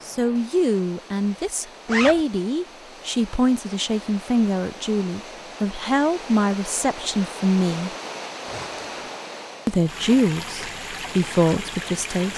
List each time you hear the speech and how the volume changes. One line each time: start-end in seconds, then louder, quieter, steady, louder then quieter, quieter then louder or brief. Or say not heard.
0.1-7.9 steady
9.7-12.3 brief.